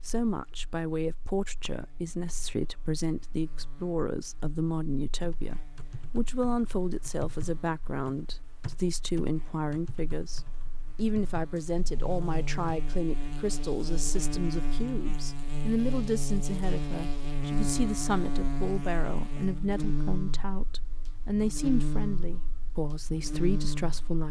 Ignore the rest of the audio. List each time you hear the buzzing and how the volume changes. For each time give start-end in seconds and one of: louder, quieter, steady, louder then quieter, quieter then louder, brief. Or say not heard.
0.0-24.2 louder.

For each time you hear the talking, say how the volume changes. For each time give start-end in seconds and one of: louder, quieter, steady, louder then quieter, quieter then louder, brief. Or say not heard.
0.1-24.2 steady.